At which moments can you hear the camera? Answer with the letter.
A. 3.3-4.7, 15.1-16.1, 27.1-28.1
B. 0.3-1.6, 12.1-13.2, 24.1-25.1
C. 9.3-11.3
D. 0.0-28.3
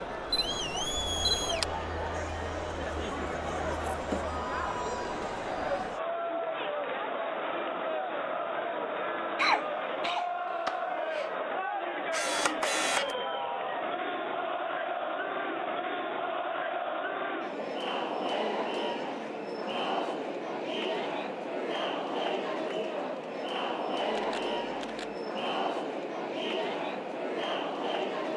B.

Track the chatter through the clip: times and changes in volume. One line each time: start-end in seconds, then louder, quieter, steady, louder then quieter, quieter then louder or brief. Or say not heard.
0.0-28.3 steady.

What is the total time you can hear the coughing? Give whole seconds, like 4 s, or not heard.
2 s.